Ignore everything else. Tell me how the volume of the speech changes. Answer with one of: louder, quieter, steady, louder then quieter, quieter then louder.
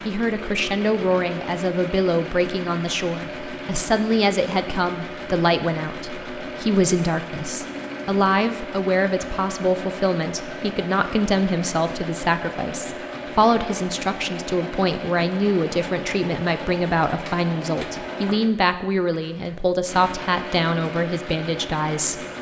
steady.